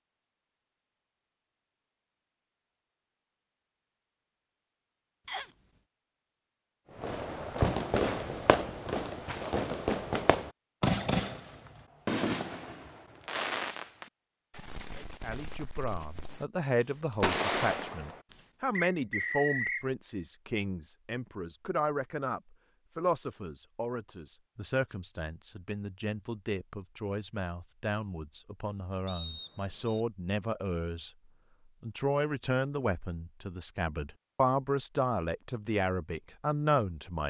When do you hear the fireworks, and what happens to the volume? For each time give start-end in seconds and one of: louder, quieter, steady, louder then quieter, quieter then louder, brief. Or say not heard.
7.0-18.4 quieter then louder.